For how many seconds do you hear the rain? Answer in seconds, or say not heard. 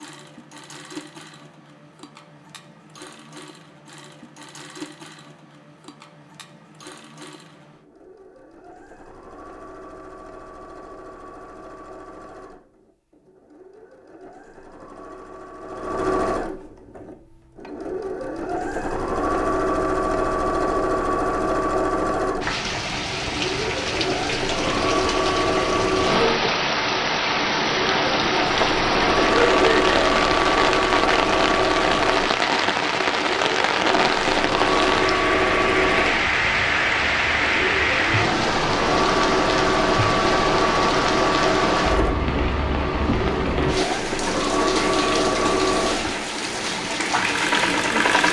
26 s.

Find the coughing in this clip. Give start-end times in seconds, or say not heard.
29.1-30.2.